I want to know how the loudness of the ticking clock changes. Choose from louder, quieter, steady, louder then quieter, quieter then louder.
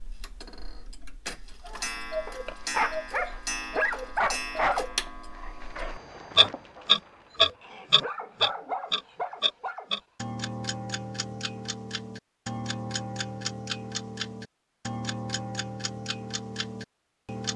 louder then quieter.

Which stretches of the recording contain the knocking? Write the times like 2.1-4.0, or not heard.
not heard.